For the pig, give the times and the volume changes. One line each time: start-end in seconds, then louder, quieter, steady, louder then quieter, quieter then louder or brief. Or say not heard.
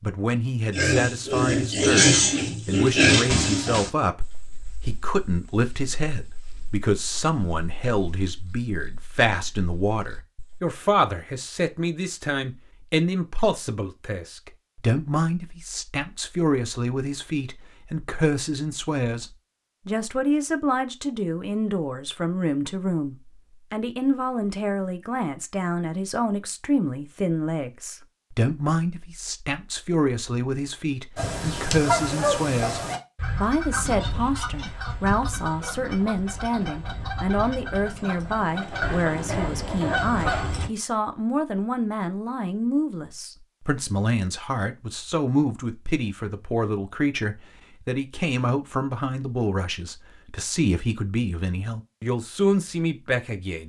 0.7-10.7 quieter.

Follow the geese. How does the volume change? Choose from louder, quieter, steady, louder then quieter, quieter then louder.
quieter then louder.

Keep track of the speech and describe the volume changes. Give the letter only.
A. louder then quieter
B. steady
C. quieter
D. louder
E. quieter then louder
B.